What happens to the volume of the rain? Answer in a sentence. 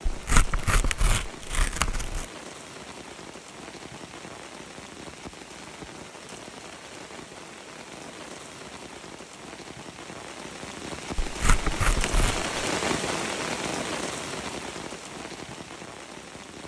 The volume of the rain goes up.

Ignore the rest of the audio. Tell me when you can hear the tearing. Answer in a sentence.
You can hear the tearing from 0.1 to 2.2 s and from 11.2 to 12.4 s.